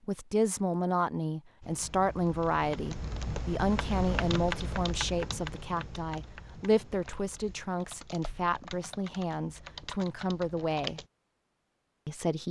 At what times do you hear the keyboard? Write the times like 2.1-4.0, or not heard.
1.6-11.1.